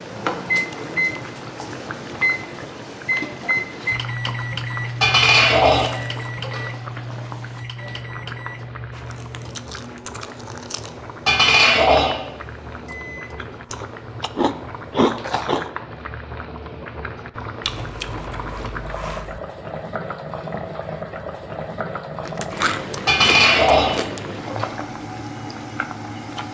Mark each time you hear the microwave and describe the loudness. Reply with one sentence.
The microwave can be heard from 0.0 to 13.6 s, getting quieter.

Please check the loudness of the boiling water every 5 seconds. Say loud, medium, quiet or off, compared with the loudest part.
loud, medium, medium, loud, loud, loud.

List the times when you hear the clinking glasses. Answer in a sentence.
The clinking glasses can be heard from 5.0 to 6.7 s, from 11.2 to 12.3 s and from 23.1 to 24.7 s.